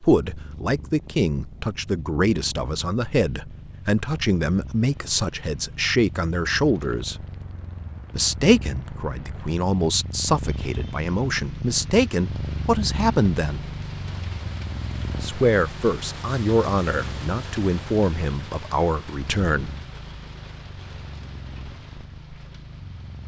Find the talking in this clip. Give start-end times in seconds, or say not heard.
0.0-7.2, 8.1-13.7, 15.2-19.7.